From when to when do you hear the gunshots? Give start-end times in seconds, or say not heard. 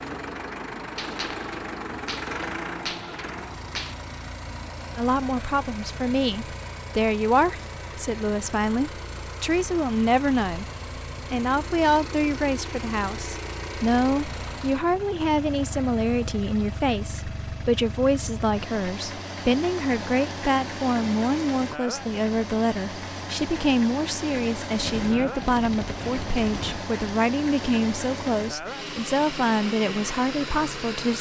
0.9-4.0, 24.8-26.8.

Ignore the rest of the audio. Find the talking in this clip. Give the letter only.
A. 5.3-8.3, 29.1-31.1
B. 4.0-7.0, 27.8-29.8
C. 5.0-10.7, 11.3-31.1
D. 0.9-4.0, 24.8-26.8
C.